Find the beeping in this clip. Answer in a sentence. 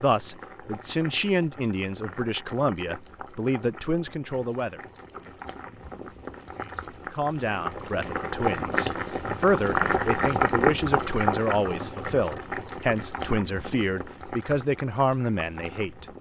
You can't hear the beeping here.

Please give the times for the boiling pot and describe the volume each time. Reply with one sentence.
The boiling pot can be heard from 0.0 to 16.1 s, getting louder then quieter.